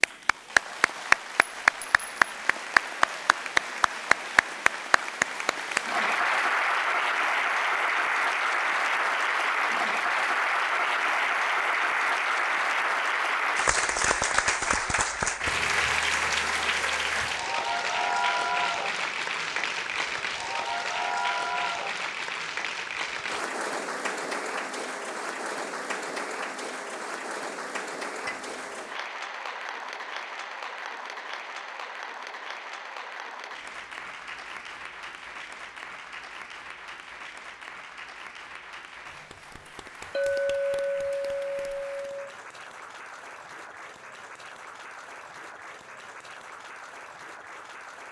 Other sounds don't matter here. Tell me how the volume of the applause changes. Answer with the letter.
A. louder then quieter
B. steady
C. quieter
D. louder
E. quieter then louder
C.